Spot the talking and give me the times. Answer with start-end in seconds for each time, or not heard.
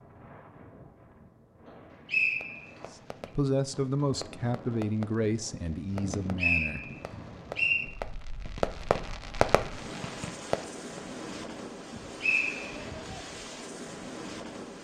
3.4-6.8.